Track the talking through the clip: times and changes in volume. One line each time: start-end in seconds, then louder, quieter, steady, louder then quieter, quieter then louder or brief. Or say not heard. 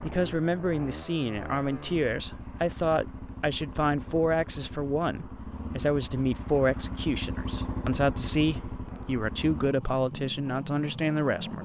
0.0-11.5 steady.